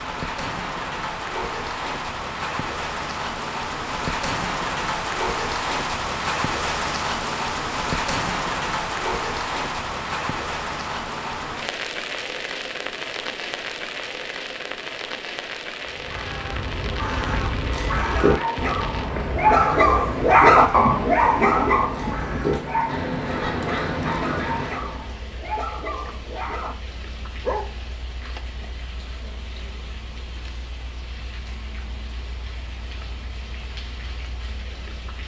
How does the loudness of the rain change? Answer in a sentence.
The volume of the rain goes down.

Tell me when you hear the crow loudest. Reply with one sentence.
The volume of the crow peaks at 18 seconds.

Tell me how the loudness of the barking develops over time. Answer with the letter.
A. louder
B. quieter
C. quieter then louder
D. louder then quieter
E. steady
D.